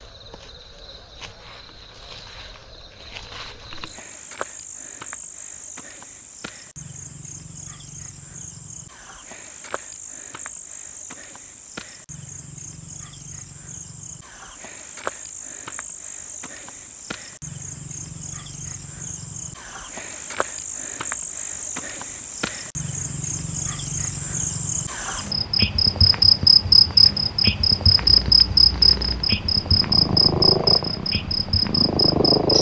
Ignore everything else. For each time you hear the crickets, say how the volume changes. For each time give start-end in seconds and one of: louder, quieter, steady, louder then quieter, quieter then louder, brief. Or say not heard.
0.0-32.5 louder.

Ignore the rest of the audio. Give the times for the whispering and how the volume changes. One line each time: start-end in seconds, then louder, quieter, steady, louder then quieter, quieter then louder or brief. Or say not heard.
not heard.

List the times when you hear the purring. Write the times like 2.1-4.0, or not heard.
27.9-32.5.